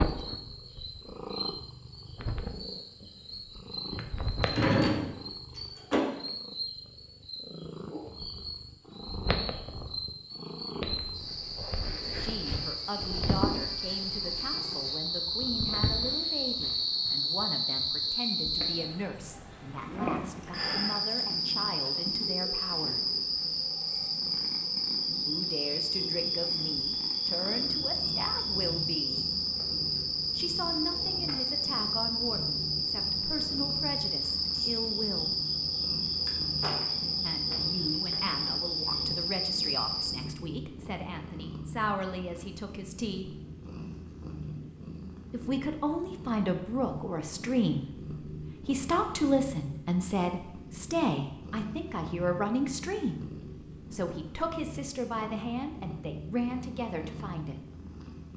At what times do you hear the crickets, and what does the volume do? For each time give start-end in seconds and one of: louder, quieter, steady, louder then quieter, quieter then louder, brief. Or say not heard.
0.0-40.2 louder.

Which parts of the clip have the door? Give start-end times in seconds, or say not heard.
4.0-6.0.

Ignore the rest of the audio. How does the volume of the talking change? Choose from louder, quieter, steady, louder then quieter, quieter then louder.
louder.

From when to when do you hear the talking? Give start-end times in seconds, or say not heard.
12.2-23.0, 25.2-29.2, 30.4-35.4, 37.2-43.4, 45.3-53.2, 53.9-57.6.